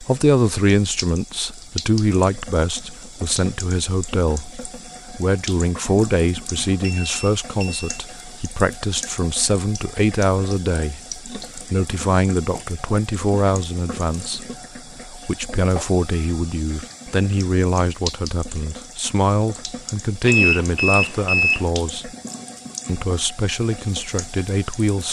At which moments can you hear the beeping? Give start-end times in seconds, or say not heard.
6.8-8.1, 20.2-21.6.